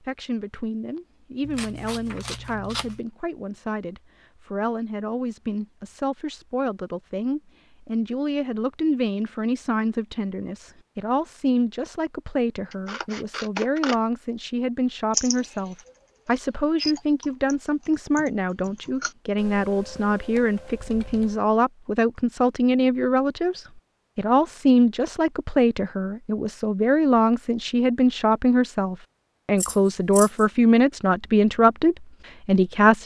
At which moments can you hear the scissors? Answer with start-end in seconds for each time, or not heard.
1.4-3.0, 12.7-13.9, 29.6-30.4.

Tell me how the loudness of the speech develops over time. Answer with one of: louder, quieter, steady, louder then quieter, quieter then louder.
louder.